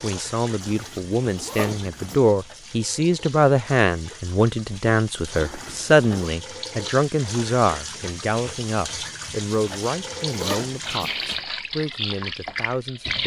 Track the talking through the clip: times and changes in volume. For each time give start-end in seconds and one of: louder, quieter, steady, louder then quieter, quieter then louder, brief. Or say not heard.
0.0-13.2 quieter.